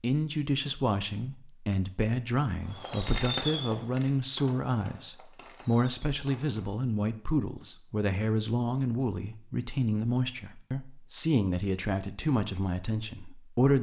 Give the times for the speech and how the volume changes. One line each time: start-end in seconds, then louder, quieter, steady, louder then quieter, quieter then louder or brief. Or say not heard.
0.0-13.7 steady.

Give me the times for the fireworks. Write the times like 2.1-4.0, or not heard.
2.6-6.8.